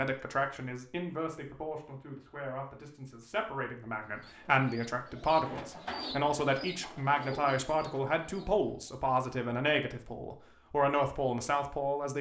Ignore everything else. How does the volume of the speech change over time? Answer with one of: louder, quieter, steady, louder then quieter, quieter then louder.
louder.